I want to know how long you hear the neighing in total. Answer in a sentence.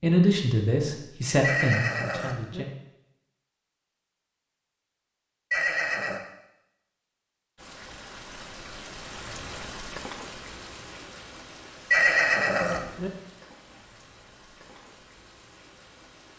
The neighing can be heard for 3 seconds in total.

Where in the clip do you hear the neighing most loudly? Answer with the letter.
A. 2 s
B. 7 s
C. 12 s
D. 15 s
C.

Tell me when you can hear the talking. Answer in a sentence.
The talking can be heard from 0.0 to 2.7 s.